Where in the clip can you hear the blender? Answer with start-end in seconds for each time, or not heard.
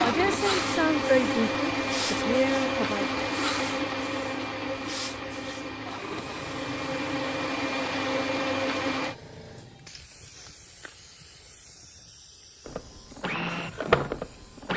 0.0-9.2, 12.7-14.7.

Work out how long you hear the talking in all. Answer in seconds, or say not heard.
3 s.